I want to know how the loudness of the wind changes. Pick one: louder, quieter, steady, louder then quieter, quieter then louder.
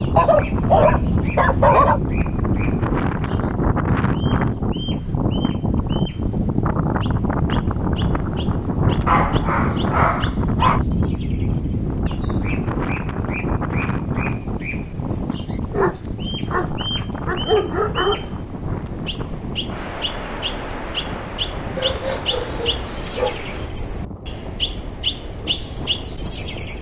quieter.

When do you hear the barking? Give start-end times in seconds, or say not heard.
0.1-2.0, 9.1-10.8, 15.7-18.2, 21.8-23.4.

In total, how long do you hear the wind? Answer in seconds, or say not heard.
27 s.